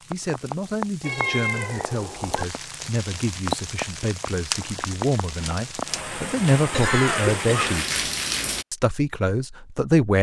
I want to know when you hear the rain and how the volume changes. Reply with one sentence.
The rain can be heard from 0.0 to 8.7 s, getting louder.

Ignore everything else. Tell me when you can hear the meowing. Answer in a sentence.
You can hear the meowing from 1.0 to 2.5 s.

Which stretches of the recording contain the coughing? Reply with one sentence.
You can hear the coughing from 6.7 to 7.8 s.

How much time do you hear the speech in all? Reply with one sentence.
The speech can be heard for 9 seconds in total.